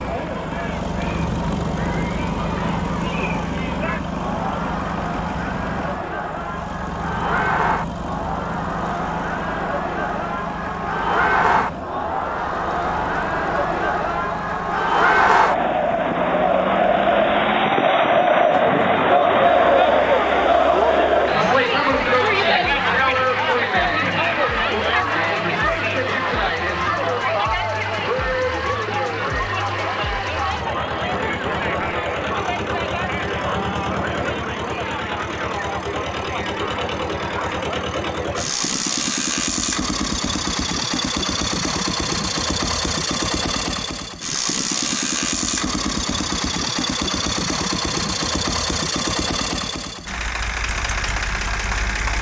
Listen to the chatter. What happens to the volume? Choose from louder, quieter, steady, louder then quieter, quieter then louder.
louder then quieter.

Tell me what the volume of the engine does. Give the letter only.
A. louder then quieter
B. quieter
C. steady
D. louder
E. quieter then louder
E.